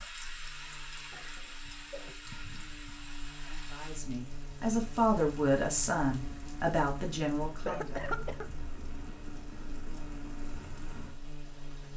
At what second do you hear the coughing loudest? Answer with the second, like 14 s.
8 s.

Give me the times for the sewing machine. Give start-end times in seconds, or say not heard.
not heard.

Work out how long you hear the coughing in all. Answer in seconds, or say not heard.
2 s.